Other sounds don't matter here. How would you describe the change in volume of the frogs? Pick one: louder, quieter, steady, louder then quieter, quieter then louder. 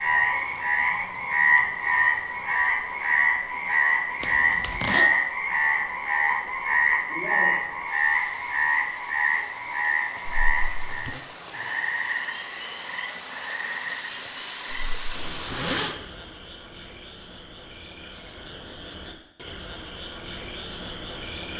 quieter.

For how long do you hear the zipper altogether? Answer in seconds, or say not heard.
3 s.